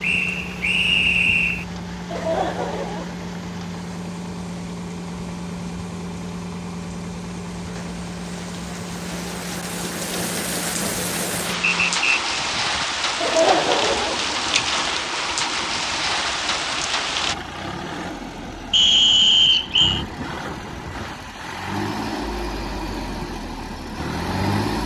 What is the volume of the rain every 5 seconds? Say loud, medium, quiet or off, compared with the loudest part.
quiet, quiet, loud, loud, off.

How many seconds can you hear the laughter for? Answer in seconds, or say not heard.
3 s.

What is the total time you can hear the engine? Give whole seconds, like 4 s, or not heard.
25 s.